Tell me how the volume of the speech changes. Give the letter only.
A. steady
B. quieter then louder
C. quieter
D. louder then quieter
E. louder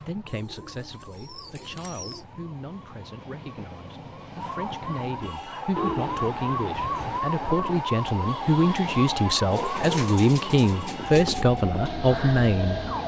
E.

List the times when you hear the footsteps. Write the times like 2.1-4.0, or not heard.
not heard.